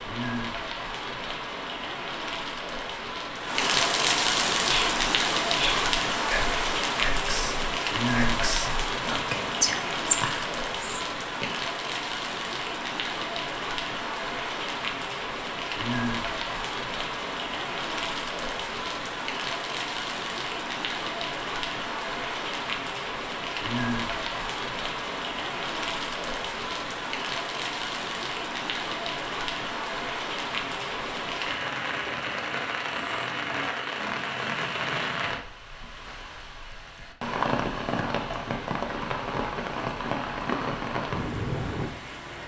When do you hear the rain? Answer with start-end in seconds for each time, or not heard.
0.0-42.4.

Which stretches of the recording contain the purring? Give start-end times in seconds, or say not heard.
not heard.